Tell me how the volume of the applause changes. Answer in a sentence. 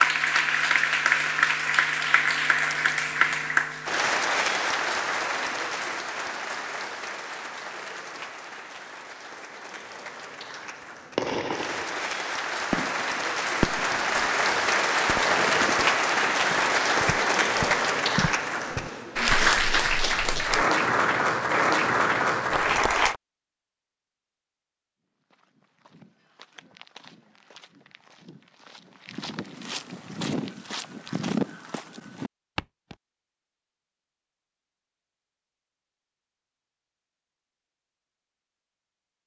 The loudness of the applause goes down, then up.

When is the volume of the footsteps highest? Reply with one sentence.
The loudest moment of the footsteps is at 31 seconds.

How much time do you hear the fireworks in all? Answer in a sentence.
The fireworks can be heard for 5 seconds in total.